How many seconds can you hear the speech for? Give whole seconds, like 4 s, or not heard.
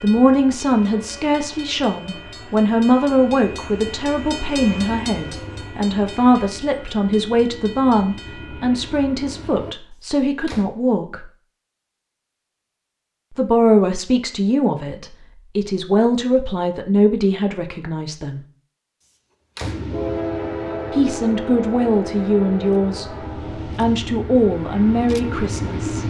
21 s.